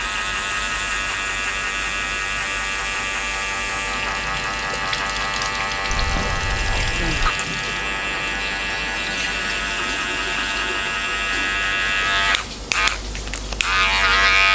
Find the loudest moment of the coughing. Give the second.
7 s.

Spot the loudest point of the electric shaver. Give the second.
14 s.